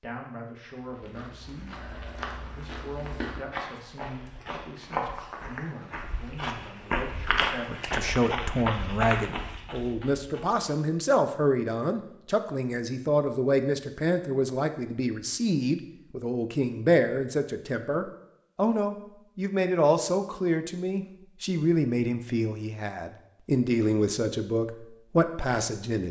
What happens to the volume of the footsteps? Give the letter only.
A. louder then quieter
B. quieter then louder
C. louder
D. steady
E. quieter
C.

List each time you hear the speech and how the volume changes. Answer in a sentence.
You can hear the speech from 0.0 to 26.0 s, getting louder.